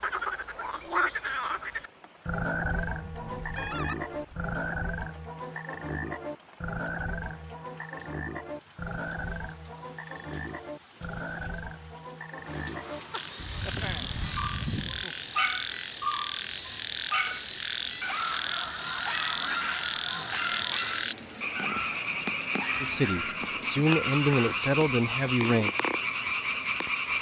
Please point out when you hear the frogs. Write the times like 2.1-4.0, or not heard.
0.0-27.1.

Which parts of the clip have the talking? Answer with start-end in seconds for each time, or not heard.
22.8-25.7.